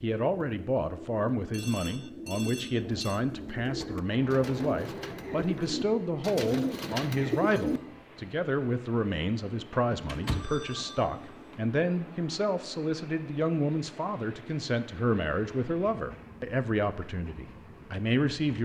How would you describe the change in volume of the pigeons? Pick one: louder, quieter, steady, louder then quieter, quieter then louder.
louder.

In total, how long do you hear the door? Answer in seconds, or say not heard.
2 s.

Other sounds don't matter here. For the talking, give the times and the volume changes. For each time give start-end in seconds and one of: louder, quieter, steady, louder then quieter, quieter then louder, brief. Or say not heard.
0.0-18.5 steady.